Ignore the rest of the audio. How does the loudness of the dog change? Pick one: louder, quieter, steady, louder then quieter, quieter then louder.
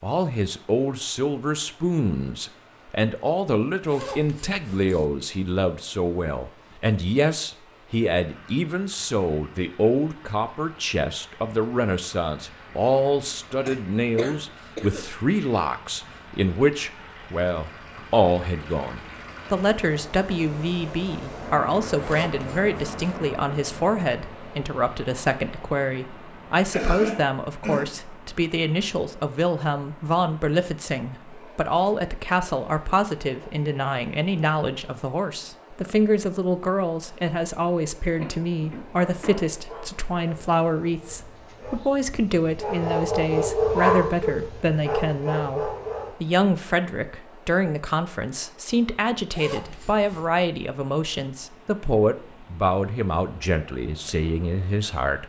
louder then quieter.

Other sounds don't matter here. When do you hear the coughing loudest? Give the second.
27 s.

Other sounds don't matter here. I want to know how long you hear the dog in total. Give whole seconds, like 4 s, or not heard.
7 s.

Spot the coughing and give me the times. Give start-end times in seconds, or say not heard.
13.7-15.1, 26.7-27.9, 38.1-39.3.